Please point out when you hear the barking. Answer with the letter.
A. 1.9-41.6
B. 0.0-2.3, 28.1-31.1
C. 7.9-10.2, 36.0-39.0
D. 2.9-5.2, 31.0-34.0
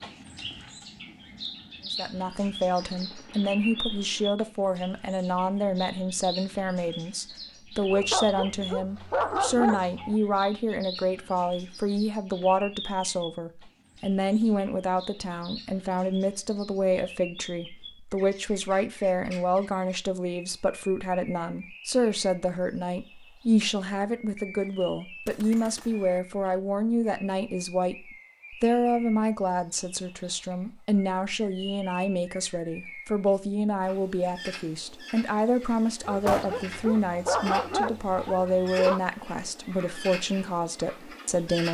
C.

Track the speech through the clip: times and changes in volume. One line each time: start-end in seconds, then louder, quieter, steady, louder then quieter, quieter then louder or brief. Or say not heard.
1.9-41.6 steady.